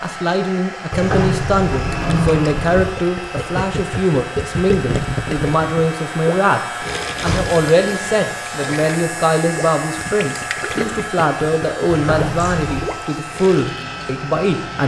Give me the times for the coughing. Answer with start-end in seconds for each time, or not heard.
not heard.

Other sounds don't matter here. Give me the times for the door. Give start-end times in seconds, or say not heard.
0.9-3.0, 7.1-7.6, 11.8-12.9.